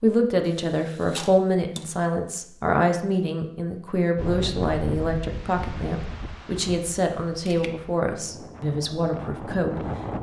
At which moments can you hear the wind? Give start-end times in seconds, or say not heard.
4.2-10.1.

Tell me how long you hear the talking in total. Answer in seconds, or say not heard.
10 s.